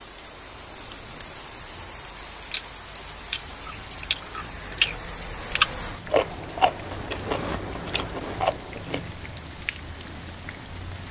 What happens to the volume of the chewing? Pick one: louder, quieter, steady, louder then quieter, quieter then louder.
louder then quieter.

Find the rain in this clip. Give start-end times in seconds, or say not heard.
0.0-11.0.